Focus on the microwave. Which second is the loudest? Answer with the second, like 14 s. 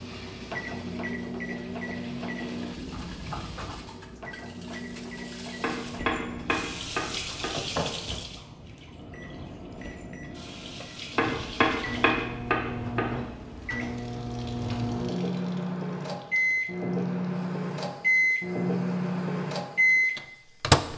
20 s.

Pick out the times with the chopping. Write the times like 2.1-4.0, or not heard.
5.6-7.5, 11.2-13.1.